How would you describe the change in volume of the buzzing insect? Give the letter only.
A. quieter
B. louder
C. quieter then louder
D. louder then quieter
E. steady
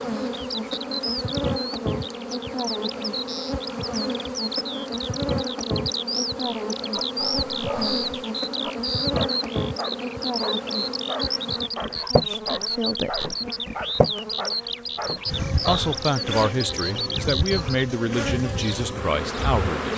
E.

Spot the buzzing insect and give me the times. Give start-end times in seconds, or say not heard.
0.0-19.9.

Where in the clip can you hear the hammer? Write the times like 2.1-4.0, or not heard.
not heard.